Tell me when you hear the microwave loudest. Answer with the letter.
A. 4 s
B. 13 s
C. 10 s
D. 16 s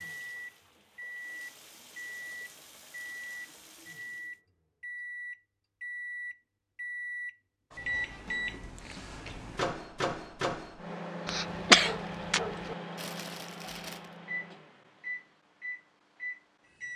C.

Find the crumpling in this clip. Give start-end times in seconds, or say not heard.
12.9-14.2.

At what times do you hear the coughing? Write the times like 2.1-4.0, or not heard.
11.2-12.8.